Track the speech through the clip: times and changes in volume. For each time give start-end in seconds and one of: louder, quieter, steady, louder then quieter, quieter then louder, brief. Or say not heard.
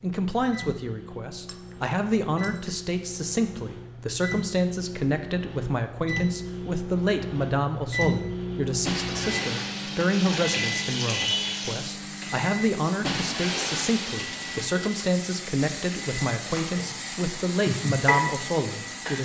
0.0-19.1 steady.